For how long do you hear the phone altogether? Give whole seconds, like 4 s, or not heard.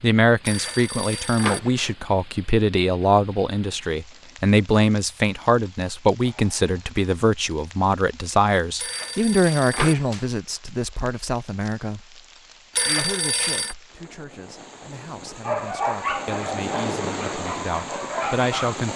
4 s.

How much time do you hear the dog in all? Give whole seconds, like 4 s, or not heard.
3 s.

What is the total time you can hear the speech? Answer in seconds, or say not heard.
18 s.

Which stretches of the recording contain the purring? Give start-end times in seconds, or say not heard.
not heard.